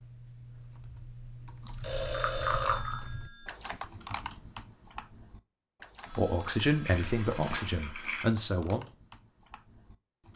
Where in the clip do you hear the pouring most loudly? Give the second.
3 s.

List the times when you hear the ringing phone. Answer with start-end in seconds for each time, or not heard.
1.8-3.5, 6.0-7.8.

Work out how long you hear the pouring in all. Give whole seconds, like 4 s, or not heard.
3 s.